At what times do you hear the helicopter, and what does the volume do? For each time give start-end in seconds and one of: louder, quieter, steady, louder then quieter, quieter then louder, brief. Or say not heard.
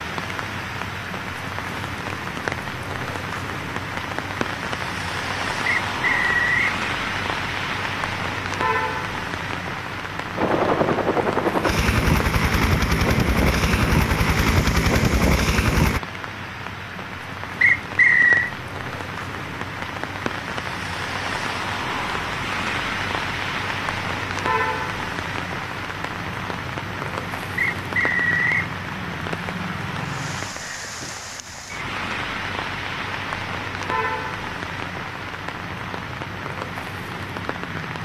10.3-16.0 steady.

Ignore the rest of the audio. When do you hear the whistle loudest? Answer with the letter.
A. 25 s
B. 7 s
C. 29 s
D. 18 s
D.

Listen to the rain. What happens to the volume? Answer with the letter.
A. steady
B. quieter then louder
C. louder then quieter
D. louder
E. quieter
A.